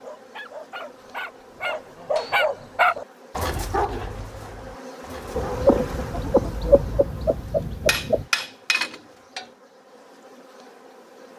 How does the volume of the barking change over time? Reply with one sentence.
The volume of the barking goes up, then down.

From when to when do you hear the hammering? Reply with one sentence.
The hammering can be heard from 1.5 to 2.5 s and from 7.8 to 9.4 s.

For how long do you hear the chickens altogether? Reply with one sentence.
The chickens can be heard for 3 seconds in total.